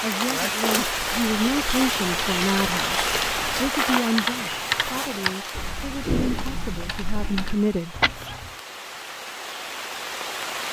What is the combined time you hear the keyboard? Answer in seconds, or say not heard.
8 s.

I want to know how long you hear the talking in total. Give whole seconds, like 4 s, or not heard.
8 s.